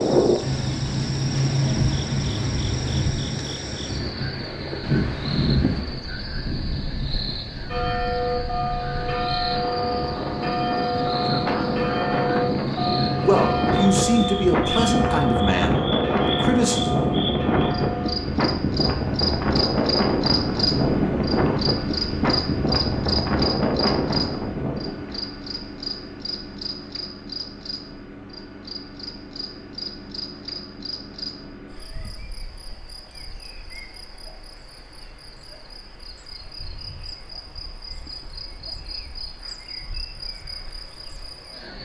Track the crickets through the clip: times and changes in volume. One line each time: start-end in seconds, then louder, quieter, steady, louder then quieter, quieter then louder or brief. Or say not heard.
0.0-41.7 louder then quieter.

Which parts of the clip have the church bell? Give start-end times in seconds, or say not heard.
7.7-18.1.